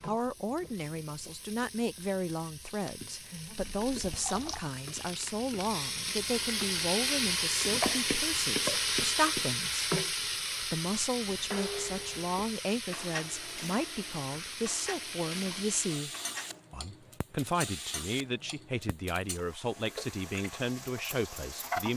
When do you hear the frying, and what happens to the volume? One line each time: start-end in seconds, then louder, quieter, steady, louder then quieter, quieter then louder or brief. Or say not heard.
0.0-21.9 louder then quieter.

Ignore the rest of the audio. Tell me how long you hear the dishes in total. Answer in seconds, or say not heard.
5 s.